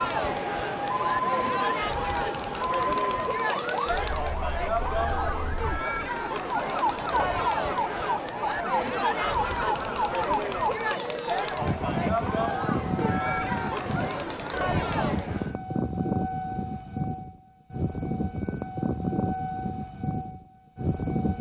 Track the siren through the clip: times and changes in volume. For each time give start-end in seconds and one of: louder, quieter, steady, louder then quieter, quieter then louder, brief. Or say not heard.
0.0-21.3 steady.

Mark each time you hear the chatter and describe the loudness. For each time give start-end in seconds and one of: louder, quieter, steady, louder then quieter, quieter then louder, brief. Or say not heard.
0.0-15.6 steady.